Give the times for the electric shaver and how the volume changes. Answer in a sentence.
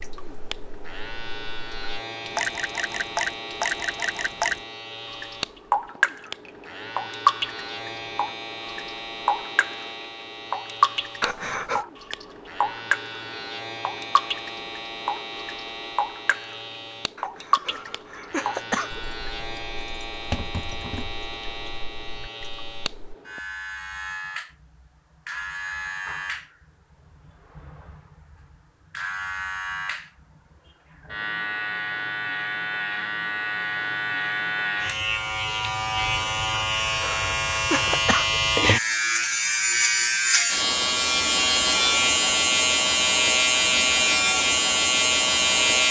The electric shaver can be heard from 0.0 to 45.8 s, getting louder.